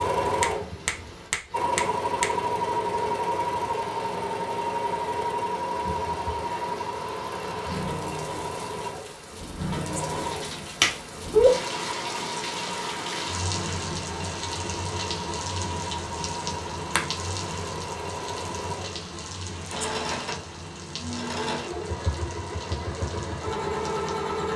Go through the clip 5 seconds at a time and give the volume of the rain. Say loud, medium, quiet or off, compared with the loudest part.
medium, loud, loud, loud, medium.